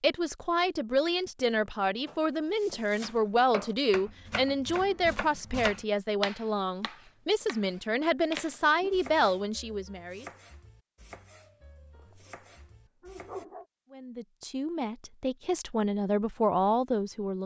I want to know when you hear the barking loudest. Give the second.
13 s.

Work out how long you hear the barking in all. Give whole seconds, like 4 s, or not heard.
2 s.